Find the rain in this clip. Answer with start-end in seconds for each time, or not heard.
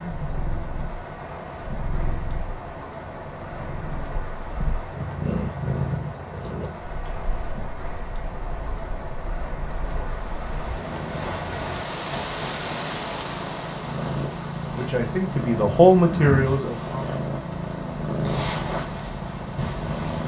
0.0-20.0.